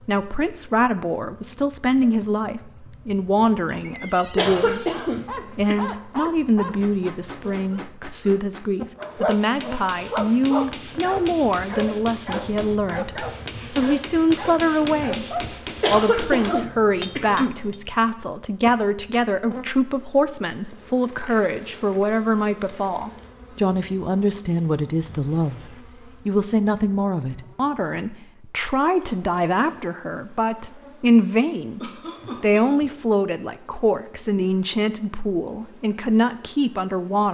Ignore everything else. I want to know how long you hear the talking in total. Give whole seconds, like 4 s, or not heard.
37 s.